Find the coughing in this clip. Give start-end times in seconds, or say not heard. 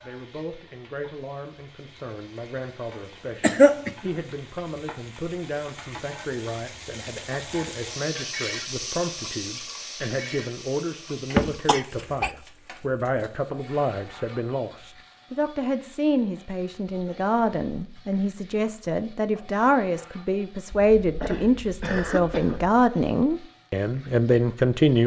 3.4-4.1, 11.3-12.3, 20.7-22.8.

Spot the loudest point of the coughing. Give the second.
4 s.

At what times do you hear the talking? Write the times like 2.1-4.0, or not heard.
0.0-25.0.